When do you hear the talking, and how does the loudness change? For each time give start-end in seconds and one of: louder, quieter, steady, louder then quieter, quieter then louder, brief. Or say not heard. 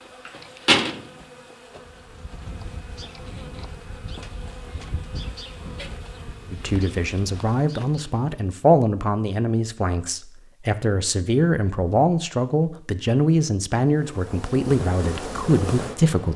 6.5-16.3 steady.